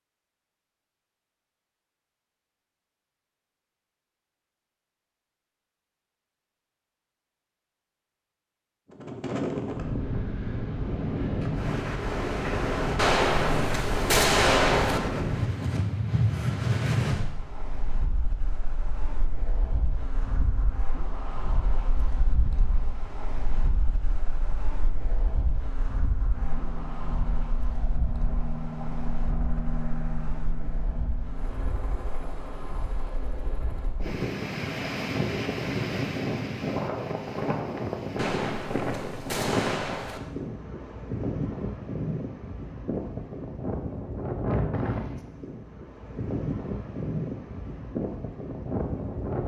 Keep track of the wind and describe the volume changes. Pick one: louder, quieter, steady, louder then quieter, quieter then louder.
quieter then louder.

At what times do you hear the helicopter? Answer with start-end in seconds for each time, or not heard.
26.4-33.9.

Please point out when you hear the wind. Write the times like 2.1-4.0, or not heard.
8.9-49.4.